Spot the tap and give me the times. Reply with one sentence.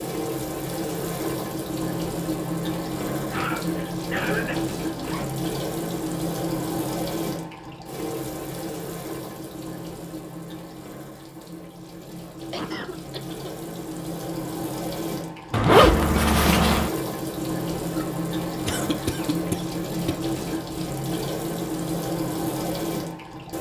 You can hear the tap from 0.0 to 23.5 s.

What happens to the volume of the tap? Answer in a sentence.
The loudness of the tap goes down, then up.